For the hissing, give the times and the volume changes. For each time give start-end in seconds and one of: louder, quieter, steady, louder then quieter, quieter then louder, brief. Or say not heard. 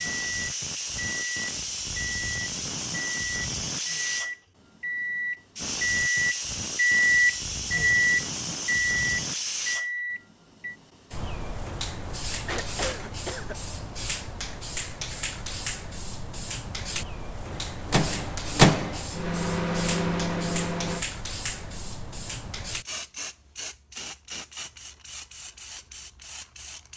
0.0-4.3 steady
5.5-26.9 quieter.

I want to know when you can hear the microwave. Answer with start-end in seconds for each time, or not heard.
0.0-10.8, 17.4-21.1.